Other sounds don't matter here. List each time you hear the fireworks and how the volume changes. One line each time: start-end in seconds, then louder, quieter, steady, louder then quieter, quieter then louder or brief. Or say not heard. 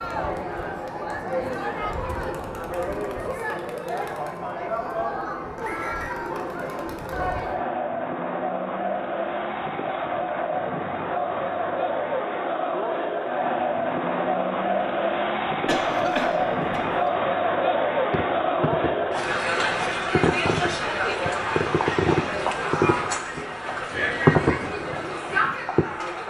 18.1-25.9 louder.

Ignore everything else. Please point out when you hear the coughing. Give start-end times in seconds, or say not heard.
15.7-17.1.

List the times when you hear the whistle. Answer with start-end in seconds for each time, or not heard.
5.6-6.2.